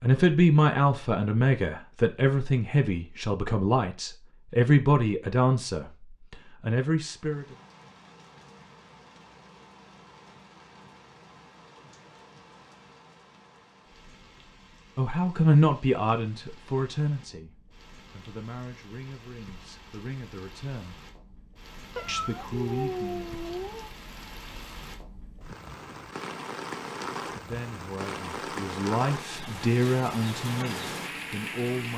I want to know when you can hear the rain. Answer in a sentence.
The rain can be heard from 7.0 to 31.9 s.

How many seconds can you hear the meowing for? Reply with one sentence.
The meowing can be heard for 2 seconds in total.